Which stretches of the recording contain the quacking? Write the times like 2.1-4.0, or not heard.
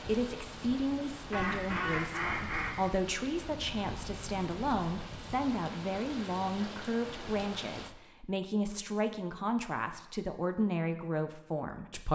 1.3-2.9.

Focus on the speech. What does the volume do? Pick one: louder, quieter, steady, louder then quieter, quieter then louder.
steady.